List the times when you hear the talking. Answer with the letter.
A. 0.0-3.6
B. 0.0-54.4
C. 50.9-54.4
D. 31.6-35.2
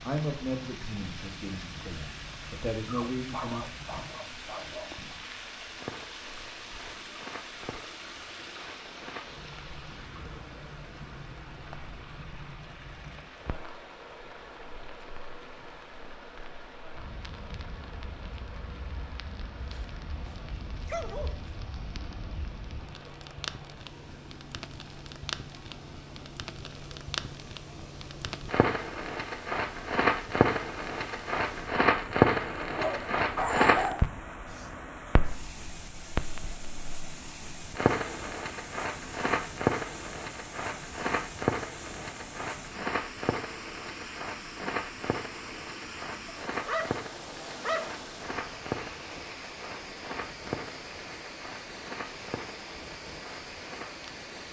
A.